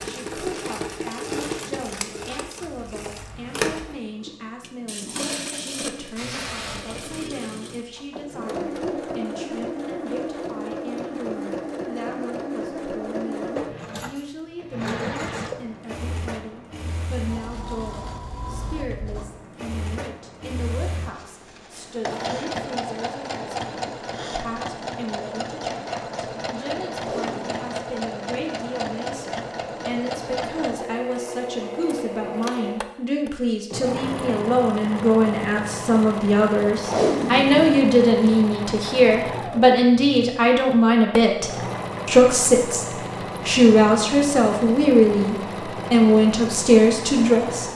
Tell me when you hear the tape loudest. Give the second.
37 s.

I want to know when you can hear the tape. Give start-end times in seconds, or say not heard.
6.2-7.1, 26.9-27.6, 36.8-38.3.